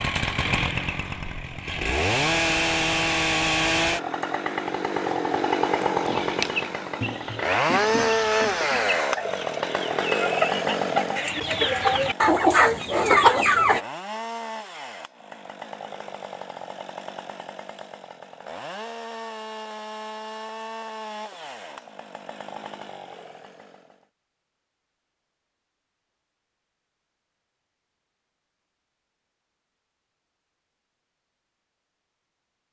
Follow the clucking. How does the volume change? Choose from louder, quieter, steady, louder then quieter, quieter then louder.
louder.